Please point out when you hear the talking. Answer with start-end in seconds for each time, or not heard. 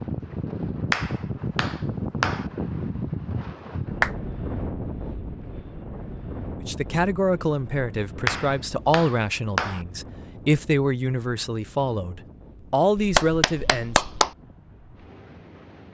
6.7-14.1.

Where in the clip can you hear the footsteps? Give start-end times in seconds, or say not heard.
not heard.